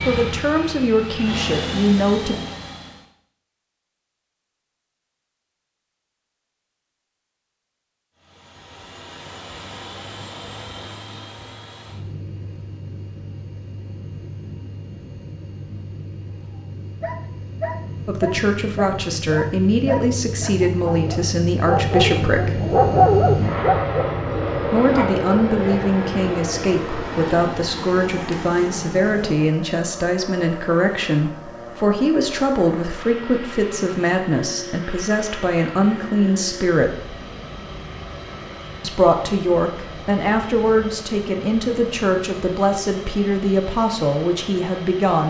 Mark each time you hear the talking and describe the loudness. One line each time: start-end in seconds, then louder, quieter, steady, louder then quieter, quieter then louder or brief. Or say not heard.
0.0-2.5 brief
18.1-22.6 steady
24.6-37.1 steady
38.8-45.2 steady.